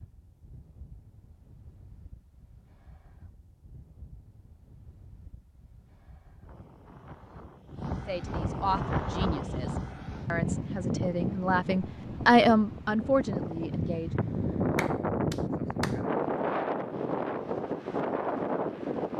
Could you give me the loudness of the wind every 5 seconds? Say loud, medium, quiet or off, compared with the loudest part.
quiet, medium, loud, loud.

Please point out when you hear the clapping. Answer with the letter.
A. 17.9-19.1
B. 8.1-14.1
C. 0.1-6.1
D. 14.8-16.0
D.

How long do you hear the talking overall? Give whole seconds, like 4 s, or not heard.
6 s.